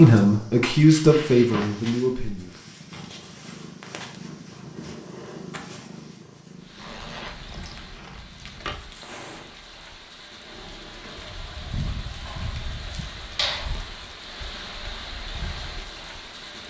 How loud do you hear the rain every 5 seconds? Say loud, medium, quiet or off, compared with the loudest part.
off, medium, loud, loud.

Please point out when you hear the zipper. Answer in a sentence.
You can hear the zipper from 6.8 to 8.8 s.